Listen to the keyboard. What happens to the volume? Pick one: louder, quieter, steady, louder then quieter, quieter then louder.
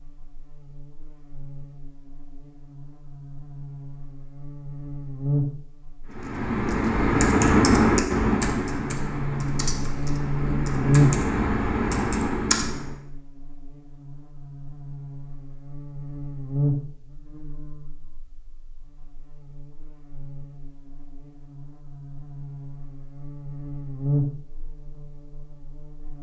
quieter then louder.